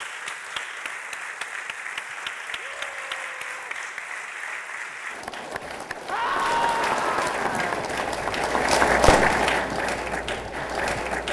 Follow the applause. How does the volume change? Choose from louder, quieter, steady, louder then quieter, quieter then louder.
louder.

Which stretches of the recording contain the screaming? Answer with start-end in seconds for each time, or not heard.
2.6-3.8, 6.0-7.8.